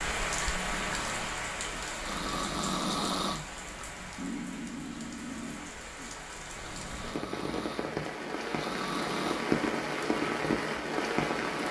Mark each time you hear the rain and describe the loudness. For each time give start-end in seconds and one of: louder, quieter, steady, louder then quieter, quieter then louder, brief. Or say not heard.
0.0-11.6 quieter then louder.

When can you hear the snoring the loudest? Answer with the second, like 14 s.
3 s.